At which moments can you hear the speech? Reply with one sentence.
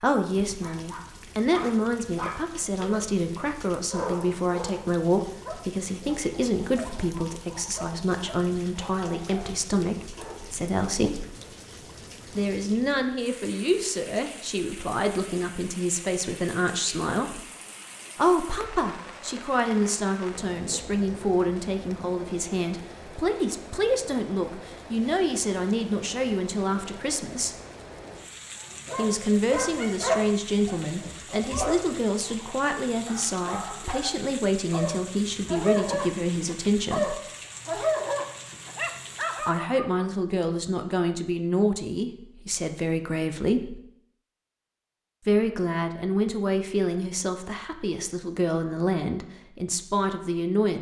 You can hear the speech from 0.0 to 11.2 s, from 12.3 to 17.4 s, from 18.1 to 27.6 s, from 28.9 to 37.1 s, from 39.4 to 43.8 s and from 45.2 to 50.7 s.